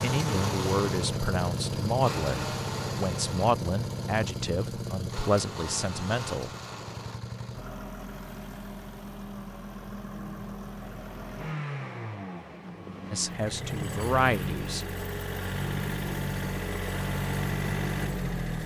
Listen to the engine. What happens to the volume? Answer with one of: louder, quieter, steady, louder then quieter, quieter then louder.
quieter then louder.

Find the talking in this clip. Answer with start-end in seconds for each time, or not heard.
0.0-6.5, 13.1-14.8.